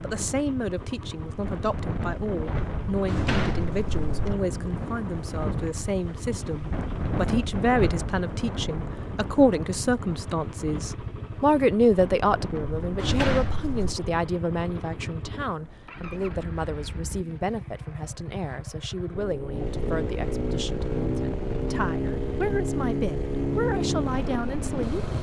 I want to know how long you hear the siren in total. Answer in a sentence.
The siren can't be heard in this clip.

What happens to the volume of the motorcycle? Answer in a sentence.
The loudness of the motorcycle goes up.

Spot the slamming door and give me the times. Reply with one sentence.
The slamming door can be heard from 2.9 to 4.3 s and from 12.8 to 13.9 s.